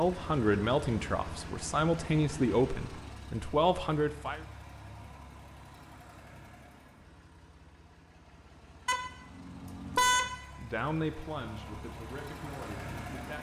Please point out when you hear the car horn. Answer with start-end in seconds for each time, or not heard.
8.8-10.3.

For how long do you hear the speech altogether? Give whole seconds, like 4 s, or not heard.
8 s.